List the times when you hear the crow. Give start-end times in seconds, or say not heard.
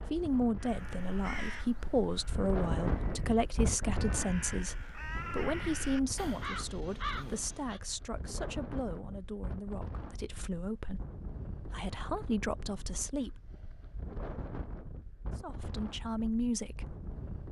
0.6-7.8.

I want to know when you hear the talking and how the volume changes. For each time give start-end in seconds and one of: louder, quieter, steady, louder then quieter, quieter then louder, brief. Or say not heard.
0.0-11.1 quieter
11.7-13.3 brief
15.3-16.9 brief.